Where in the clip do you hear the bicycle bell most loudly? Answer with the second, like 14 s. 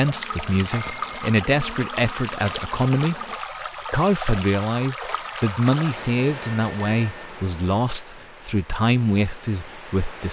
7 s.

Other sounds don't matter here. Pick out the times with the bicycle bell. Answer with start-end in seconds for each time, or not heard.
0.7-1.2, 6.2-7.3.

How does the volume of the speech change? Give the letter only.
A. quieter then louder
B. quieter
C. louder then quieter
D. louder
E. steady
E.